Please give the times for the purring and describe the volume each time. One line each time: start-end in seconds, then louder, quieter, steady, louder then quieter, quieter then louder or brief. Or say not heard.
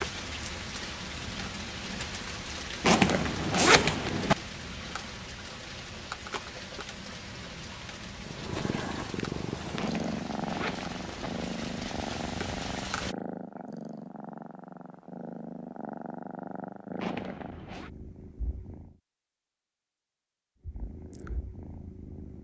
8.2-19.0 quieter
20.6-22.3 brief.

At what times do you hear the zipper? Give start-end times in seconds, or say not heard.
2.8-4.3, 9.8-11.3, 17.0-17.9.